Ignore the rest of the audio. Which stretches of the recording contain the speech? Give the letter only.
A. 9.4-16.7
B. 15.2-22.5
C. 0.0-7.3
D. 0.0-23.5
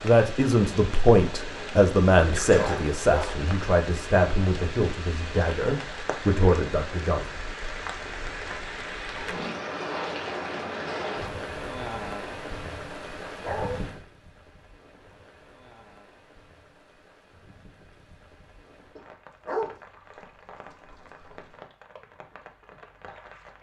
C.